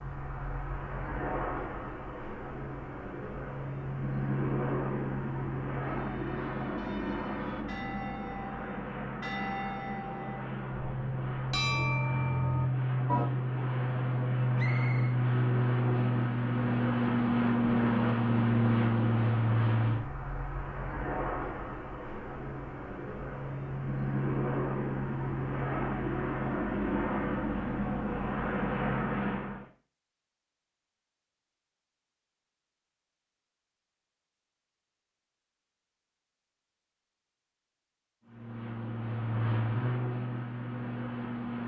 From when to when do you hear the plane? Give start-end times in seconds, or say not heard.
0.0-29.6, 38.2-41.6.